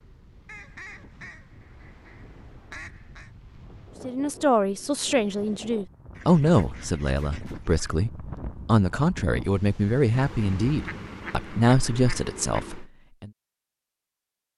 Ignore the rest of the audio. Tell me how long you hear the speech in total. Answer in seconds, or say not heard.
9 s.